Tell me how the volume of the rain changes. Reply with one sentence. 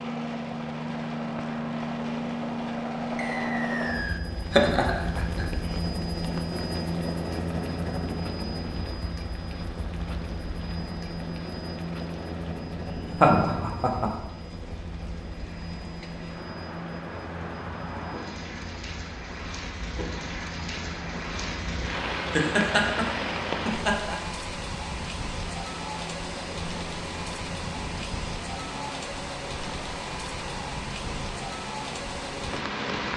The loudness of the rain goes up.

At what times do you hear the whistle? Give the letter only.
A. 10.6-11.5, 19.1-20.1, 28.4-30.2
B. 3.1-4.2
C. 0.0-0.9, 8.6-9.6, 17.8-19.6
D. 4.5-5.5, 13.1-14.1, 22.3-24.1
B.